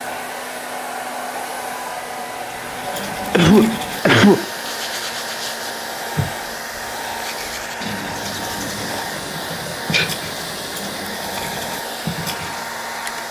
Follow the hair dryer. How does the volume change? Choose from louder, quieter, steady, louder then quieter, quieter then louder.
steady.